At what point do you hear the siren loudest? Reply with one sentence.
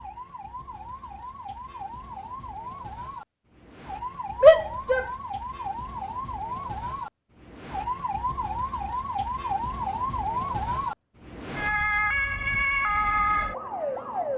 The volume of the siren peaks at 13 seconds.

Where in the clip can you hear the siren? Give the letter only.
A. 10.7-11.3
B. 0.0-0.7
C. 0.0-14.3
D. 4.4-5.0
C.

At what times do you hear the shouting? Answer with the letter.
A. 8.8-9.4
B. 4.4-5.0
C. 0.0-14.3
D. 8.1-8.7
B.